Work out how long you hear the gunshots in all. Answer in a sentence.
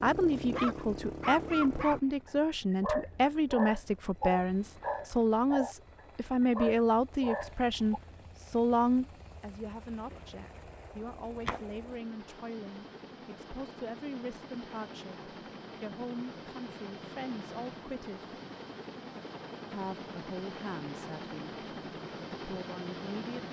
You can hear the gunshots for 2 seconds altogether.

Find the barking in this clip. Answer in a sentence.
The barking can be heard from 0.0 to 8.0 s.